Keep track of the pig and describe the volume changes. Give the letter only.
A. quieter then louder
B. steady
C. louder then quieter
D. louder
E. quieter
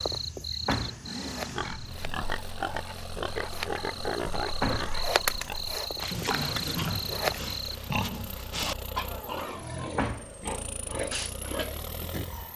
B.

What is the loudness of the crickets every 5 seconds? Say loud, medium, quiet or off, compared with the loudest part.
medium, loud, off.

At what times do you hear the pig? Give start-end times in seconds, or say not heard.
1.5-12.5.